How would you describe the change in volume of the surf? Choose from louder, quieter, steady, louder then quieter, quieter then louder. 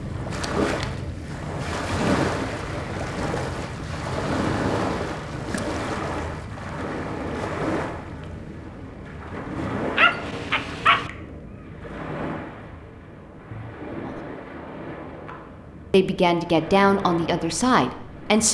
quieter.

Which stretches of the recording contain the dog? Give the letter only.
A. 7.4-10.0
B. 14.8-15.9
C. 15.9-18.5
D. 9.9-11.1
D.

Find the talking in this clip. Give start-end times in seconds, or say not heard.
15.9-18.5.